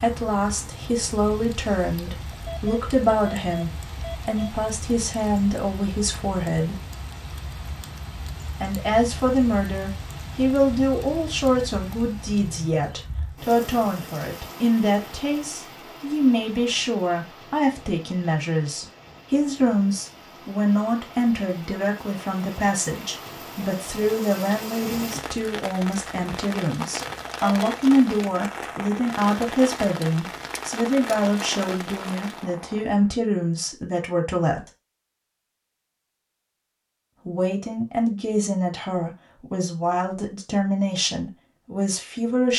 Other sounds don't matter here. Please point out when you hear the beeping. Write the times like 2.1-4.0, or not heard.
2.0-4.5, 27.0-27.6.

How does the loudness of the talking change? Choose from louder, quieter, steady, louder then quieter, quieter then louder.
steady.